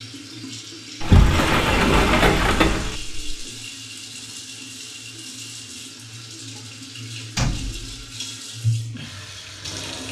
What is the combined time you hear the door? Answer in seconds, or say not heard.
3 s.